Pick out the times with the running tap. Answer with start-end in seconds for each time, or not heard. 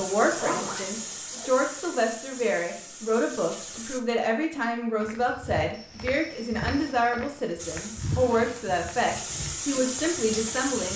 0.0-4.0, 7.5-10.9.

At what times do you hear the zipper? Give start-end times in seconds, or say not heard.
0.1-1.5, 8.0-8.6.